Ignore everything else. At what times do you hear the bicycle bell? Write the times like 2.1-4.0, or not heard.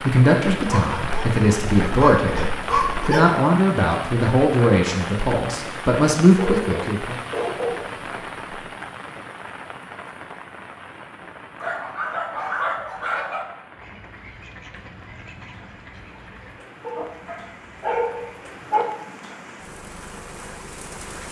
not heard.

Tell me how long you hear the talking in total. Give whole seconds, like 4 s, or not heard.
7 s.